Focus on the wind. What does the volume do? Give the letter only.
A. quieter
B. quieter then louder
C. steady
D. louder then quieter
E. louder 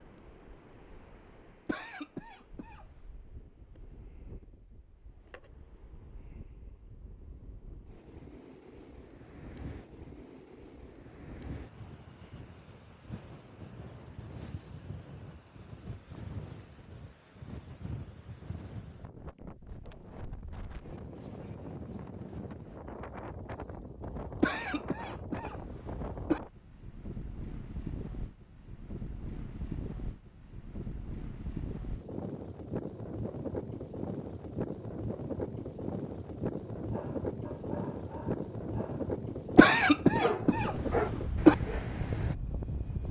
E.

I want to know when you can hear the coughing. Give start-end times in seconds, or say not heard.
1.6-3.0, 24.4-26.4, 39.5-41.5.